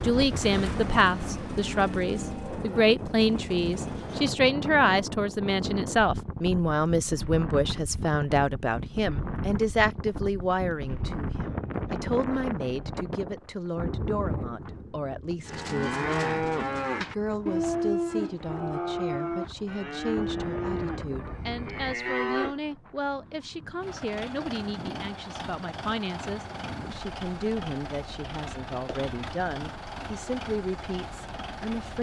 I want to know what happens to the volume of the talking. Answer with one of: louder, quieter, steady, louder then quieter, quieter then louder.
quieter.